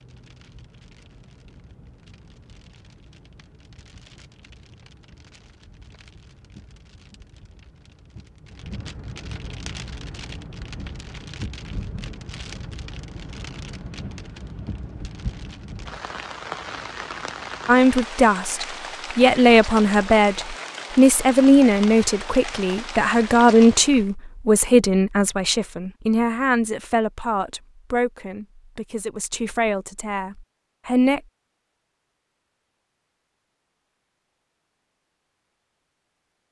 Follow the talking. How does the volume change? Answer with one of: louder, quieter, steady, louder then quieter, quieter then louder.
quieter.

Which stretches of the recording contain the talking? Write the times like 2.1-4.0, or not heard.
17.6-31.2.